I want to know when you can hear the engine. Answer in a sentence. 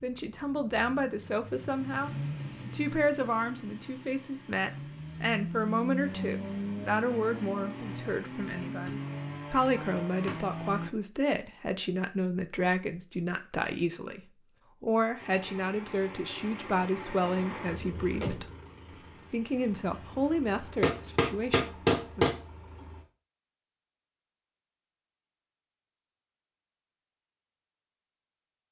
The engine can be heard from 0.0 to 10.9 s and from 15.2 to 23.1 s.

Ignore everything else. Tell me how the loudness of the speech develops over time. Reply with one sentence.
The volume of the speech stays about the same.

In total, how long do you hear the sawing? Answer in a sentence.
The sawing can't be heard in this clip.